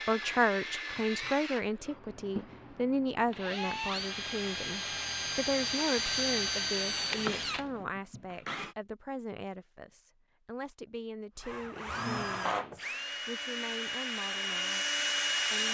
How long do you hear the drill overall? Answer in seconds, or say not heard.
13 s.